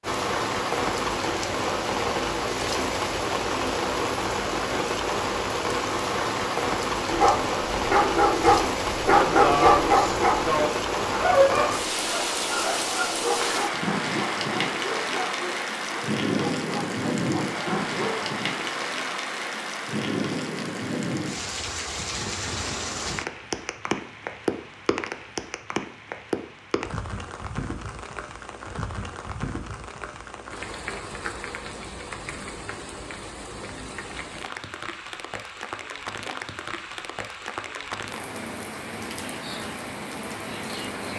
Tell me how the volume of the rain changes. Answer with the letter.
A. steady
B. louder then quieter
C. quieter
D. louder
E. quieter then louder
C.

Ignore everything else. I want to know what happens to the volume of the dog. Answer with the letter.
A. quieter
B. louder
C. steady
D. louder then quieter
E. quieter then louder
A.